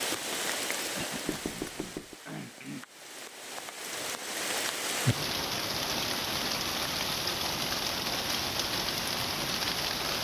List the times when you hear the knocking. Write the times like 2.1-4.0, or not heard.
1.2-2.1.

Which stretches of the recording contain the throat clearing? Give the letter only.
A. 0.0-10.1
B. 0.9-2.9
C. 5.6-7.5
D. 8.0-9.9
B.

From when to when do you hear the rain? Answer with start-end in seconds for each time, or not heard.
0.0-10.1.